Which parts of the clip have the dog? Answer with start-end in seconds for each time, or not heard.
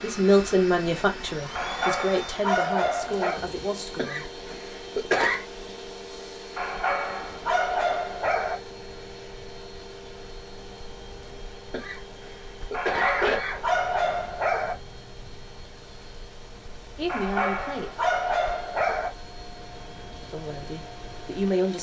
1.6-3.4, 6.5-8.6, 12.7-14.8, 17.1-19.1.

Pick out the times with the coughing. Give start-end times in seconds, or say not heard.
4.0-5.5, 11.7-13.6.